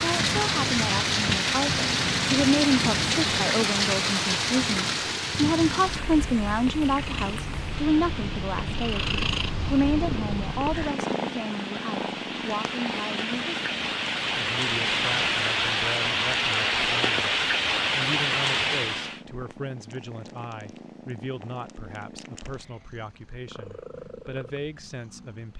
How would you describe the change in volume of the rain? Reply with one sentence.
The loudness of the rain goes down, then up.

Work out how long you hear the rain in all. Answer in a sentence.
The rain can be heard for 19 seconds in total.